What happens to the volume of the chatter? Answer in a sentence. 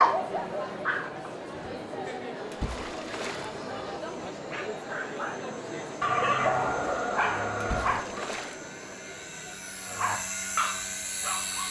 The volume of the chatter goes down.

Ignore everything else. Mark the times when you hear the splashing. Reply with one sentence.
The splashing can be heard from 2.5 to 3.5 s and from 7.6 to 8.6 s.